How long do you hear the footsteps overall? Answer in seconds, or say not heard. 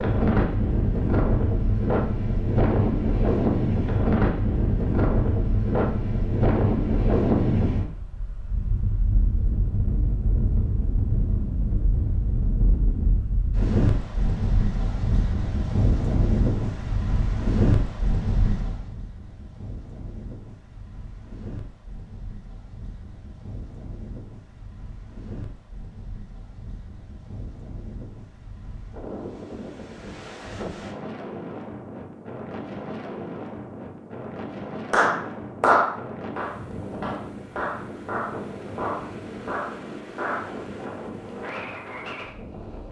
not heard.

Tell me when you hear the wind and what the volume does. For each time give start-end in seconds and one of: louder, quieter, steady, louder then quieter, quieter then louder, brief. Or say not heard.
0.0-42.8 quieter.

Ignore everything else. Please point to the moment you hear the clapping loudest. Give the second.
36 s.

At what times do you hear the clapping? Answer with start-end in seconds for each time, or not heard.
34.9-40.5.